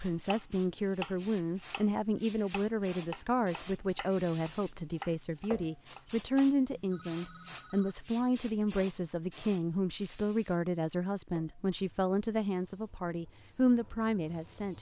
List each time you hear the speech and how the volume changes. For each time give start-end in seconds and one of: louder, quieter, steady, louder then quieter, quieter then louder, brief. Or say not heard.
0.0-14.7 steady.